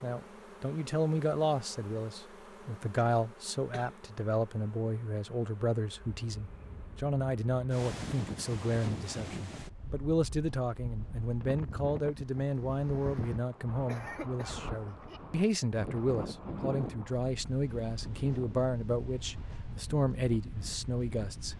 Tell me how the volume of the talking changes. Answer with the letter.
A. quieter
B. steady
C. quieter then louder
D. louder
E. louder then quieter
B.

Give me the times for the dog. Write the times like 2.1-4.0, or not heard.
not heard.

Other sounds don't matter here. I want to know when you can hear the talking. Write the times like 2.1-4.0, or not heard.
0.0-21.5.